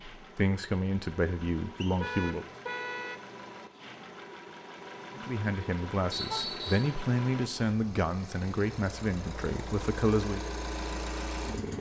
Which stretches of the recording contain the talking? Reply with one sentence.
The talking can be heard from 0.2 to 2.5 s and from 5.2 to 10.4 s.